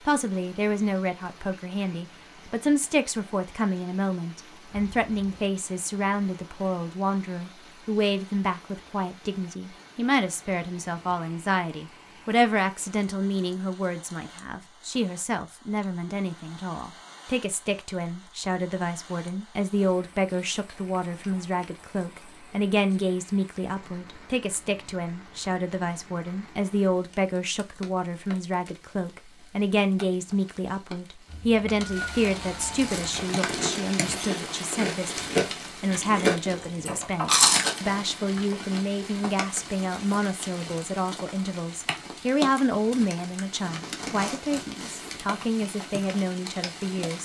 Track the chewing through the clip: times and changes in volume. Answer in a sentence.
The chewing can be heard from 32.7 to 37.9 s, getting louder.